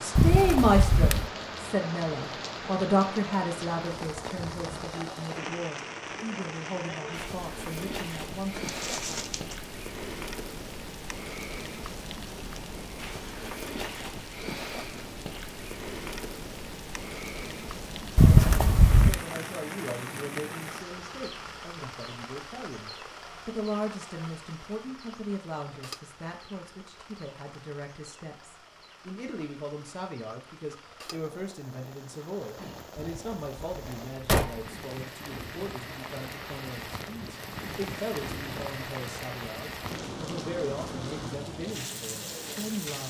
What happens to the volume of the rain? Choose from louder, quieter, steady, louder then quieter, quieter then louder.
quieter then louder.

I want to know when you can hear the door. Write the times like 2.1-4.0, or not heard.
0.1-1.2, 18.1-19.2, 33.0-34.7.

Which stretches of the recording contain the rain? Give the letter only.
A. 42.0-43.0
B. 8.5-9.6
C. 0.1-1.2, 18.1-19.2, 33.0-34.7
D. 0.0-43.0
D.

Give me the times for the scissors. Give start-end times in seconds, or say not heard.
not heard.